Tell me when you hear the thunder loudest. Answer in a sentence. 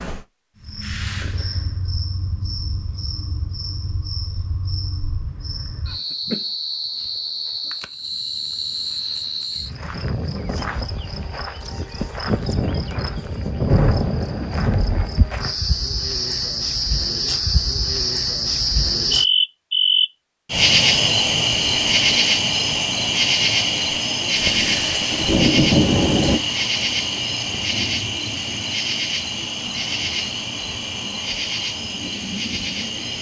The loudest moment of the thunder is at 26 seconds.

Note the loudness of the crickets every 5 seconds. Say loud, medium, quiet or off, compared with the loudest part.
quiet, medium, medium, loud, loud, medium, medium.